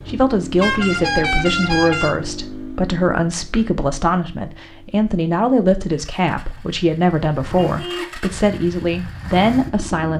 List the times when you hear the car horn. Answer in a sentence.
You can hear the car horn from 0.6 to 2.1 s and from 7.5 to 8.2 s.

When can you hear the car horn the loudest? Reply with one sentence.
The loudest moment of the car horn is at 1 second.